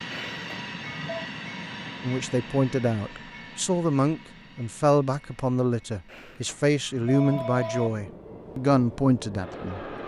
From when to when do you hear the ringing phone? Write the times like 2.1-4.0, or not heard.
0.1-1.3, 6.0-7.9.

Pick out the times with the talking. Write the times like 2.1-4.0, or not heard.
2.0-9.8.